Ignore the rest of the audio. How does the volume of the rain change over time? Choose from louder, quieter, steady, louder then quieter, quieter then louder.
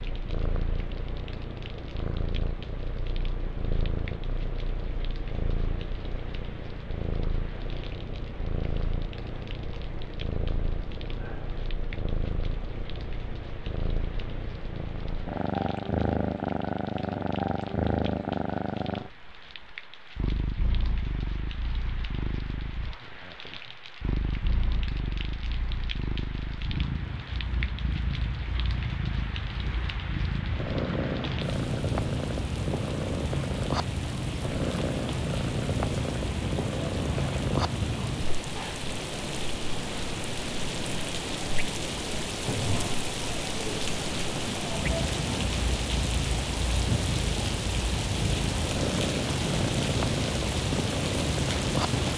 louder.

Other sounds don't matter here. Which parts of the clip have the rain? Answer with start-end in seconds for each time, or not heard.
0.0-52.1.